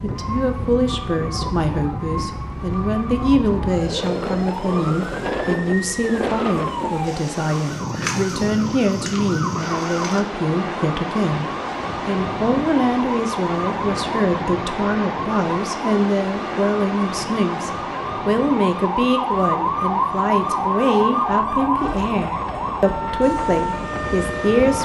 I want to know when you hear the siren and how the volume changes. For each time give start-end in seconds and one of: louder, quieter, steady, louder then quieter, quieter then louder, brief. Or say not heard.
0.0-24.8 louder.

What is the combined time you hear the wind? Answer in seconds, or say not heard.
25 s.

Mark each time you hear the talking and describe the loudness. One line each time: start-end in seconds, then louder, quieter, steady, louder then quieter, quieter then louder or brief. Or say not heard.
0.0-24.8 steady.